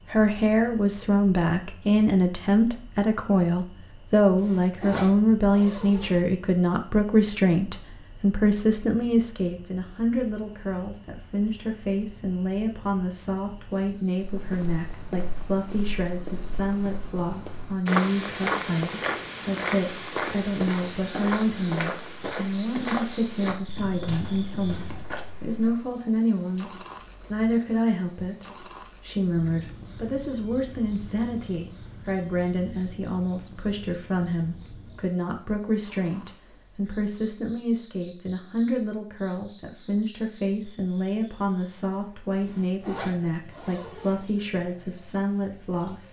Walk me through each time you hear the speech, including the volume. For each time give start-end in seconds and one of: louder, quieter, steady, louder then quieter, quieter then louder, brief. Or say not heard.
0.1-46.0 quieter.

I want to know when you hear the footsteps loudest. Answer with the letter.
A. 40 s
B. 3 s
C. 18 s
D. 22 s
C.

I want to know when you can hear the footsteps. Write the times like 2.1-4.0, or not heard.
14.2-25.2.